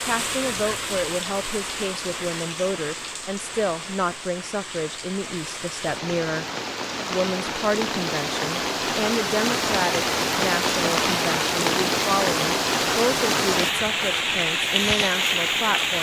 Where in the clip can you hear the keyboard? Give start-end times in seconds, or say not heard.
not heard.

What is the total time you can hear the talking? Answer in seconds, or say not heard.
15 s.